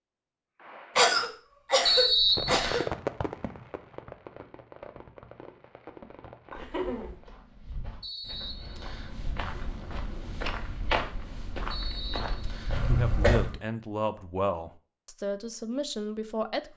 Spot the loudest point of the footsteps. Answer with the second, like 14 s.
11 s.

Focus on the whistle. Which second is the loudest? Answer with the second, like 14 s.
2 s.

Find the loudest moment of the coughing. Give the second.
1 s.